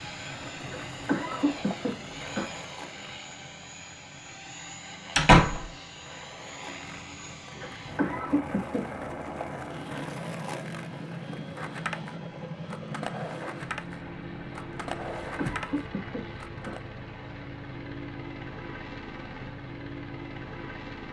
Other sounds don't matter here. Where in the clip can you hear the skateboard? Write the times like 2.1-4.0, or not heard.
0.0-16.9.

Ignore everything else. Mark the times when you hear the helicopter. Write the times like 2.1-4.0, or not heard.
0.0-21.0.